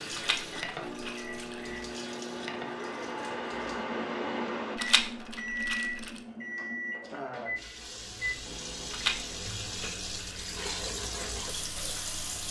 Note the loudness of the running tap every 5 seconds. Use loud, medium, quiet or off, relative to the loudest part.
medium, medium, loud.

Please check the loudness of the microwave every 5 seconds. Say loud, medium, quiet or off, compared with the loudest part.
loud, loud, quiet.